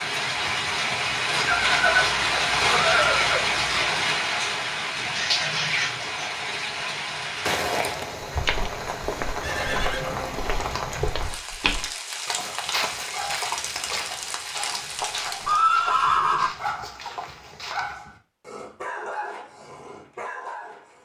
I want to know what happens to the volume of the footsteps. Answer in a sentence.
The loudness of the footsteps goes down.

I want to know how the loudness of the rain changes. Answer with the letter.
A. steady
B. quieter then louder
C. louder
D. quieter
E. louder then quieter
D.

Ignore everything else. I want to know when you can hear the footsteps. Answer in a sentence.
You can hear the footsteps from 7.5 to 17.9 s.